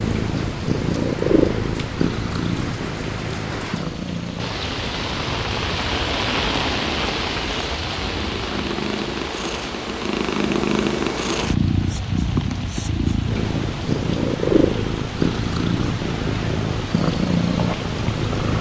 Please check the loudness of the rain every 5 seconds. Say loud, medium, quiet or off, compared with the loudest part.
medium, loud, medium, medium.